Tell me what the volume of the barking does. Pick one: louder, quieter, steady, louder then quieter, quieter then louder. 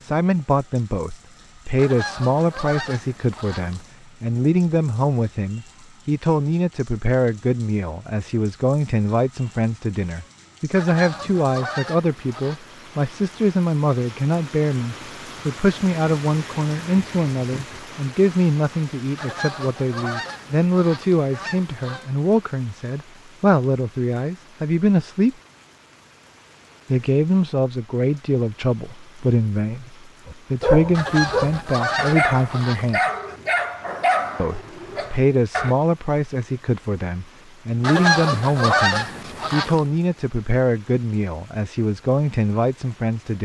quieter.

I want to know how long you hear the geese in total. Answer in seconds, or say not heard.
11 s.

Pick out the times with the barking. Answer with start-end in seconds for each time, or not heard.
30.2-35.8.